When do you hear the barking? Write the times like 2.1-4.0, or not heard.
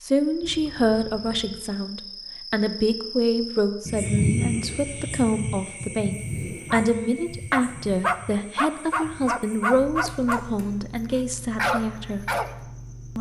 6.7-10.4, 11.1-12.6.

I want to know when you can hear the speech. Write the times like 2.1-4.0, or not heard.
0.0-12.3.